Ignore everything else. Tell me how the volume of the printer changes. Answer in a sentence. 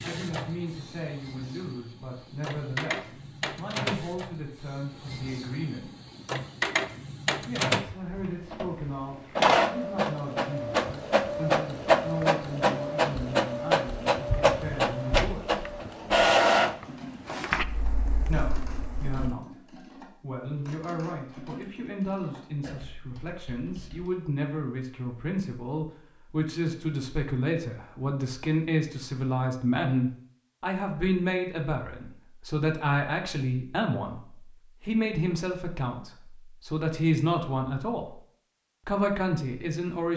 The volume of the printer goes up.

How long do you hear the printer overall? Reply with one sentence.
You can hear the printer for 19 seconds altogether.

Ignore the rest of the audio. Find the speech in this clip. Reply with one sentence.
You can hear the speech from 0.0 to 5.9 s, from 7.5 to 15.7 s, from 18.2 to 38.2 s and from 38.9 to 40.1 s.